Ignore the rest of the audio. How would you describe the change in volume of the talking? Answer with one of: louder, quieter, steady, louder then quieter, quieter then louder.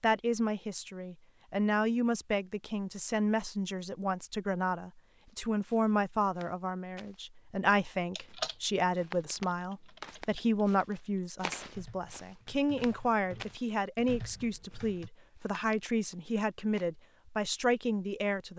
steady.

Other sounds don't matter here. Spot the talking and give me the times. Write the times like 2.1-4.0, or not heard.
0.0-18.5.